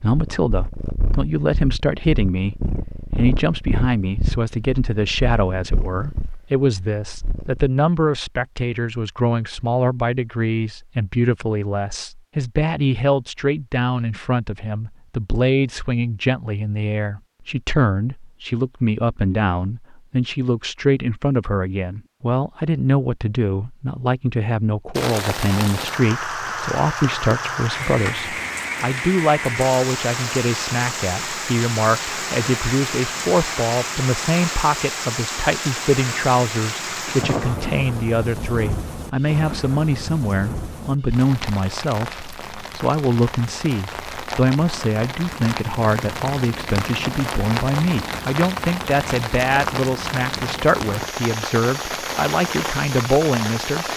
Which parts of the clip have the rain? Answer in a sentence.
The rain can be heard from 24.9 to 53.9 s.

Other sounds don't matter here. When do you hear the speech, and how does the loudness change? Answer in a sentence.
The speech can be heard from 0.0 to 53.9 s, at a steady volume.